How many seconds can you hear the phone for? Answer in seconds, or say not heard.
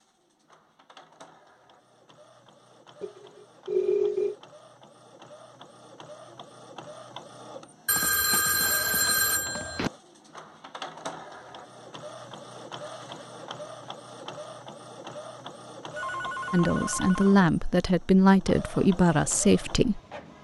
5 s.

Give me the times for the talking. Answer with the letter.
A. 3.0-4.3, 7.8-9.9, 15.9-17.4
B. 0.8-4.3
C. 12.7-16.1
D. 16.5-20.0
D.